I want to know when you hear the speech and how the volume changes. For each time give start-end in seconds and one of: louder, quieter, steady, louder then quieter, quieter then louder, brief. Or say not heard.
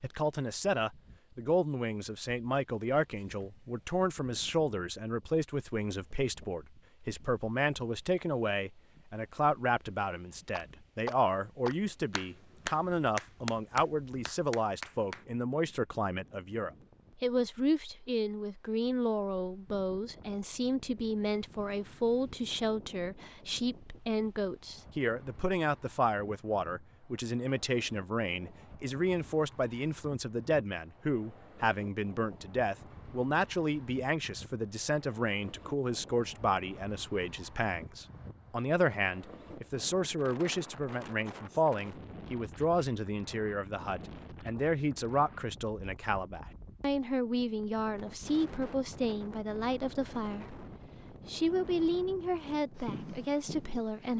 0.0-50.6 steady
51.2-54.1 brief.